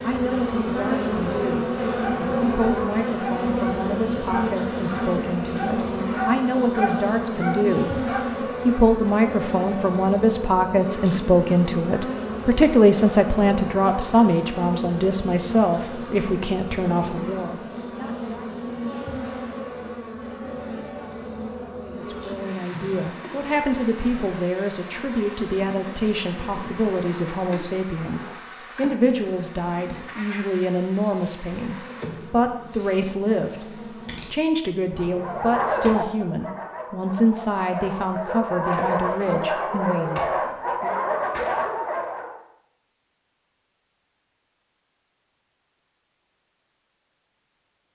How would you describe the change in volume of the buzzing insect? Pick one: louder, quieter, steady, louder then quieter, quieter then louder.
quieter.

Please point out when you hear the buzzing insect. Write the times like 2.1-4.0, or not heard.
0.0-36.0.